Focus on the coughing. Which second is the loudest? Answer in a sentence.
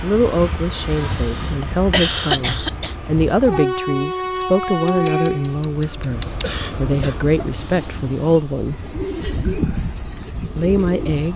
The loudest moment of the coughing is at 2 seconds.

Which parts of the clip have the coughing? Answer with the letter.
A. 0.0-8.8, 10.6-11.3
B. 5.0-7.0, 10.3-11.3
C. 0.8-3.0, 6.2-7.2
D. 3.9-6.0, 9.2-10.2
C.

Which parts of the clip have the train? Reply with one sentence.
The train can be heard from 0.0 to 11.3 s.